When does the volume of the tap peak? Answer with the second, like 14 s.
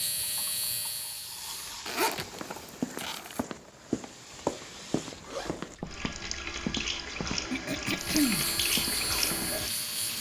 9 s.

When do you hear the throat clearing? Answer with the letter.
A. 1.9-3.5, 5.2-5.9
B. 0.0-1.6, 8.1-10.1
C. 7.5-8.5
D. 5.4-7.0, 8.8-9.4
C.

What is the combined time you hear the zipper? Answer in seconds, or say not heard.
2 s.